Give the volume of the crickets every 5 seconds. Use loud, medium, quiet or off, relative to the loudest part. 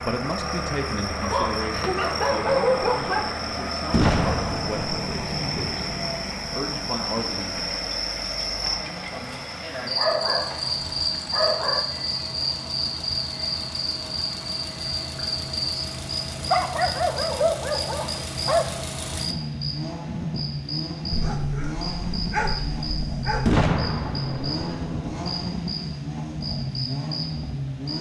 medium, loud, loud, loud, medium, medium.